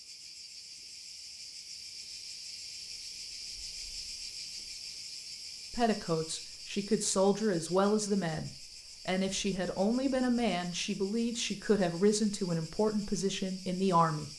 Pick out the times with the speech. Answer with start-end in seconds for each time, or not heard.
5.7-14.3.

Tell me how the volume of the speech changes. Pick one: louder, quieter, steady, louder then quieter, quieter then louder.
steady.